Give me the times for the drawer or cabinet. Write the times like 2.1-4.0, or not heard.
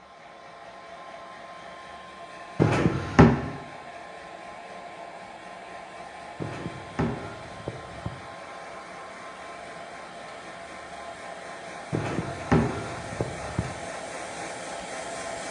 2.5-3.4, 6.4-8.2, 11.9-13.7.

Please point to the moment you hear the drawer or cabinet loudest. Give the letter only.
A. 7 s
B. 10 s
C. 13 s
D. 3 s
D.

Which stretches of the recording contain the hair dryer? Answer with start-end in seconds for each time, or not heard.
0.0-15.4.